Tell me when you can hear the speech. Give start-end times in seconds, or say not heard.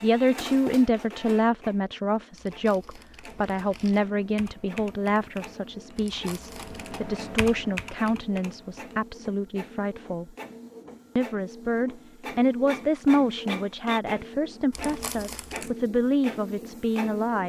0.0-10.3, 11.2-17.4.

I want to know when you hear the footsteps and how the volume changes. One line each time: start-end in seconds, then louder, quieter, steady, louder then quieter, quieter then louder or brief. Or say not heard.
not heard.